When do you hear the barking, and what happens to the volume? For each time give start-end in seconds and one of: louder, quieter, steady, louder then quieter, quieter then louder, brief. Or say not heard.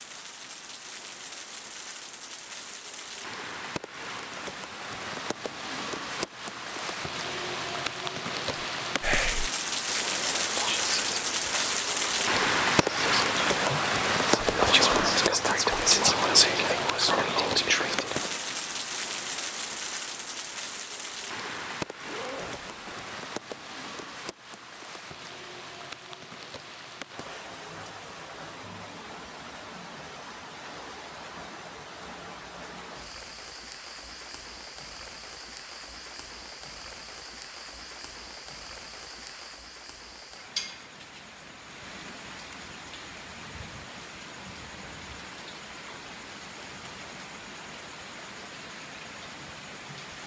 not heard.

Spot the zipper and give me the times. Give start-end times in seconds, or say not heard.
22.1-23.1.